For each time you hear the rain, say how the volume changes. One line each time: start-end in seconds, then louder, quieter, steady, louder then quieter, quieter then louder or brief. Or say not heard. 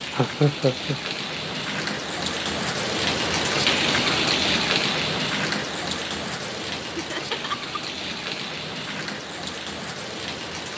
0.0-10.7 louder then quieter.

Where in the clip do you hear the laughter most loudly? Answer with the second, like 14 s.
1 s.